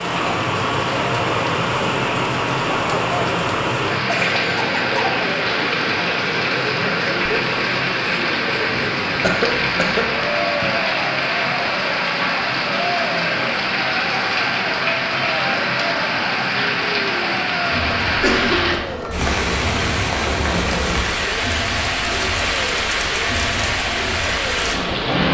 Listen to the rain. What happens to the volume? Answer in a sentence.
The volume of the rain stays about the same.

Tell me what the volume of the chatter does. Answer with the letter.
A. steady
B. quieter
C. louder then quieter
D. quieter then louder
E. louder
A.